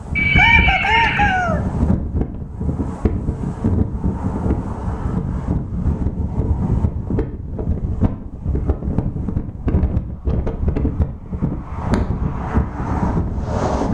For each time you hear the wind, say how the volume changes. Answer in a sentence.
You can hear the wind from 0.0 to 13.8 s, at a steady volume.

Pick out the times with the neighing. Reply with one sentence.
The neighing can be heard from 0.1 to 1.4 s.